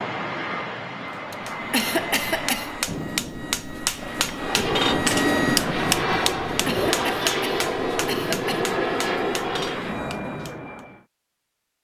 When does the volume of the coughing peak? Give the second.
2 s.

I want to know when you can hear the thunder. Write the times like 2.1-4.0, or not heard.
2.9-7.0.